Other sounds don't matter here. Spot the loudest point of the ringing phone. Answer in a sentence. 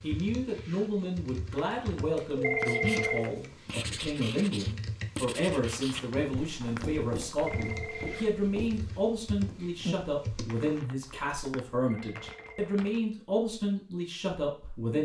The volume of the ringing phone peaks at 3 seconds.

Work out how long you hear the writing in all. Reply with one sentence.
The writing can be heard for 7 seconds in total.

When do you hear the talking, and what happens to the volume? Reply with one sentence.
You can hear the talking from 0.0 to 15.0 s, at a steady volume.